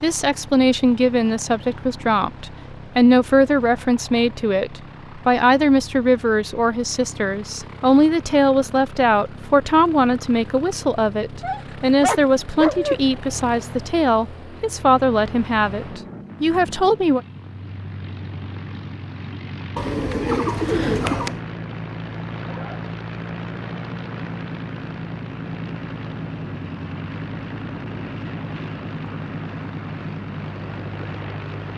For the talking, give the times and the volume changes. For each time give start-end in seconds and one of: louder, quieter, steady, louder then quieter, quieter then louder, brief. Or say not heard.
0.0-17.2 steady.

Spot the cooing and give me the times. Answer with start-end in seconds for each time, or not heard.
19.8-21.4.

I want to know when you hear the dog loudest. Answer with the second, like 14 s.
13 s.